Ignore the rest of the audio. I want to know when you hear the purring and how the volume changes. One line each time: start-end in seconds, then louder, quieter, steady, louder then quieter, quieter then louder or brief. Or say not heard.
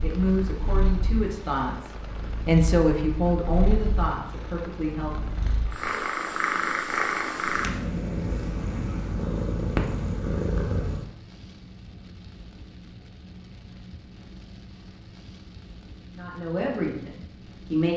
0.0-11.1 louder.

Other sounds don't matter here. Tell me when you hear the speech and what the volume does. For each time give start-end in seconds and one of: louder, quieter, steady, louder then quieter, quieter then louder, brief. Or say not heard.
0.0-5.3 louder then quieter
16.1-17.9 brief.